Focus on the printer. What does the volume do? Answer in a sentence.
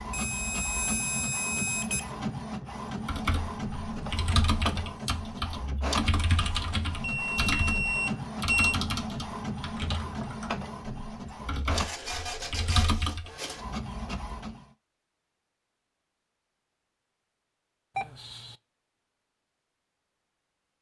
The loudness of the printer stays about the same.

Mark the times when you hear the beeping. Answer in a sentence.
The beeping can be heard from 0.1 to 2.1 s, from 7.0 to 8.8 s and from 17.9 to 18.6 s.